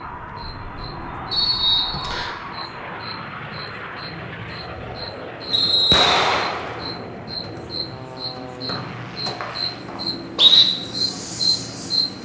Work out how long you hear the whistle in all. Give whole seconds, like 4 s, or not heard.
4 s.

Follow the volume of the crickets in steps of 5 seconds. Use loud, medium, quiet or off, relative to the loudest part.
quiet, medium, loud.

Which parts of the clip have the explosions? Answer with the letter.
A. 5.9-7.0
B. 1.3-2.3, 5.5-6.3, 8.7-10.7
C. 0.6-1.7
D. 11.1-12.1
A.